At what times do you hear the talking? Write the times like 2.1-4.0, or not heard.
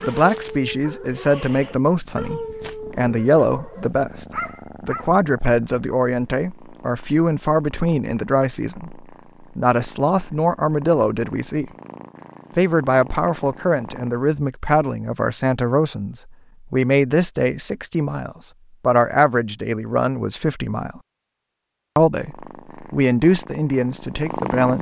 0.0-11.7, 12.6-21.0, 21.9-24.7.